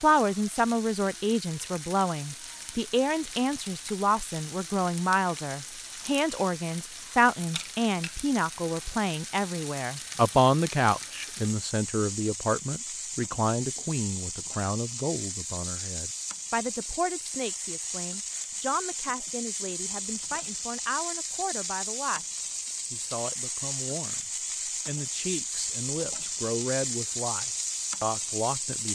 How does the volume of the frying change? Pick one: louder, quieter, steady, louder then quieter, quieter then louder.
louder.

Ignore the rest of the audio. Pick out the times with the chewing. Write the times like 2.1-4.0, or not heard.
not heard.